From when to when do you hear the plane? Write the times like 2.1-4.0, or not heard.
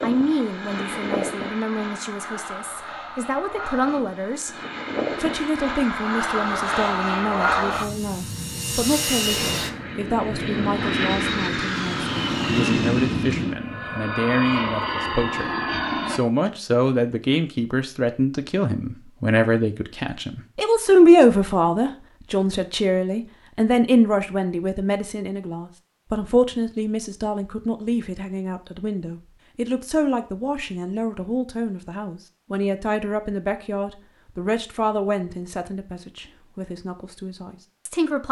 0.0-16.2.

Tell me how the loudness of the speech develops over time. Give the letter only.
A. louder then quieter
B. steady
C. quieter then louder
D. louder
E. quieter
A.